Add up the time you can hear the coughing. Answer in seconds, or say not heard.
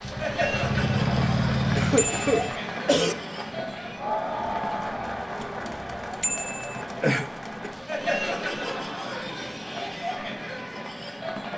3 s.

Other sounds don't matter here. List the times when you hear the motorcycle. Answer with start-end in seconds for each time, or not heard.
0.0-2.5.